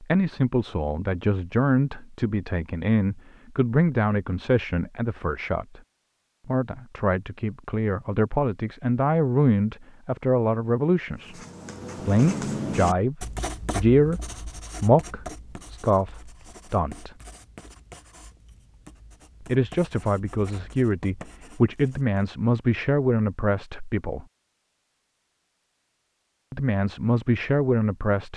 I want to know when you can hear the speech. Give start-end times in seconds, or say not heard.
0.0-5.8, 6.5-11.3, 12.1-17.1, 19.4-24.2, 26.5-28.3.